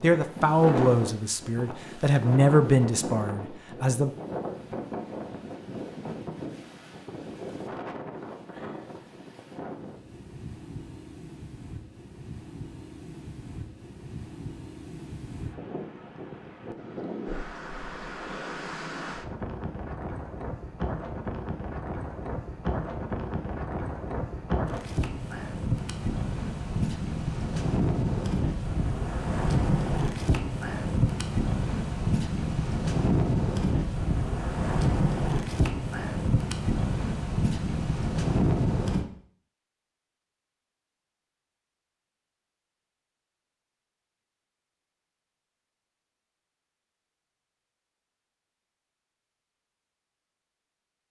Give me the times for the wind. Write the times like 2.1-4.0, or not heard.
0.0-39.0.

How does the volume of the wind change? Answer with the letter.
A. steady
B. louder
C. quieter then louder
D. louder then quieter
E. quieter
C.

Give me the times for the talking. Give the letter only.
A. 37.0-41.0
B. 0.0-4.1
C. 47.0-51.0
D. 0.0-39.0
B.